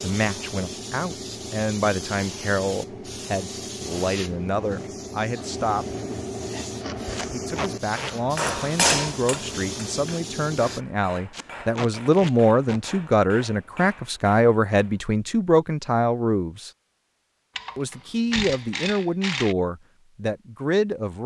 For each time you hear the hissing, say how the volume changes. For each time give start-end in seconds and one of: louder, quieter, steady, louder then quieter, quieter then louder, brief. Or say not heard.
0.0-10.8 steady.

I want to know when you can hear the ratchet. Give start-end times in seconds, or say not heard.
17.6-19.6.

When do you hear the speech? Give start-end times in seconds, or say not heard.
0.0-6.0, 7.3-16.7, 17.8-21.2.